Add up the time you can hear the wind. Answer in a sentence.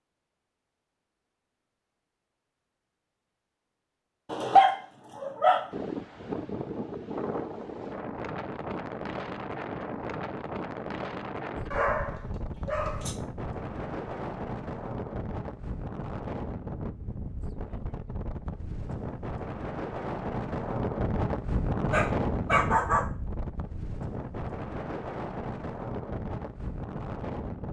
The wind can be heard for 22 seconds in total.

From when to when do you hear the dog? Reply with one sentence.
You can hear the dog from 4.3 to 5.7 s, from 11.7 to 13.2 s and from 21.9 to 23.1 s.